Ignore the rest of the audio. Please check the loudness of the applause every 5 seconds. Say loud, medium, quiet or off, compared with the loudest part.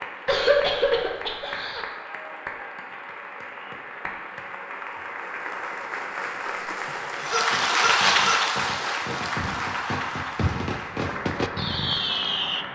medium, loud, medium.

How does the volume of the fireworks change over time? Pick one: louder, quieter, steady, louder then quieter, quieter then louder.
louder.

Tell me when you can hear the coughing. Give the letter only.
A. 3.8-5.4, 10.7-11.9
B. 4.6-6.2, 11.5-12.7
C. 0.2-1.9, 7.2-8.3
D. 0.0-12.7
C.